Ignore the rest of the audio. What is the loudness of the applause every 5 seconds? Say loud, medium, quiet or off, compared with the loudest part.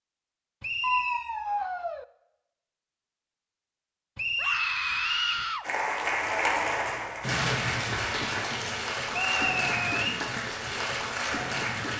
off, loud, loud.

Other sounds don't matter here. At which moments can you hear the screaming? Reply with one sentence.
The screaming can be heard from 0.8 to 2.0 s, from 4.3 to 5.7 s and from 9.1 to 10.1 s.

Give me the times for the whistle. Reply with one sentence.
The whistle can be heard from 0.6 to 1.2 s, from 4.2 to 5.5 s and from 9.1 to 10.2 s.